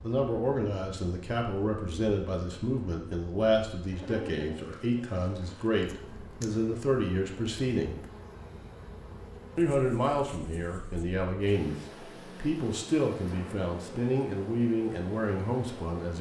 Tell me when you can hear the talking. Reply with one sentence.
The talking can be heard from 0.0 to 8.0 s and from 9.6 to 16.1 s.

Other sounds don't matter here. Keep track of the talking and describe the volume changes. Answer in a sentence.
The volume of the talking stays about the same.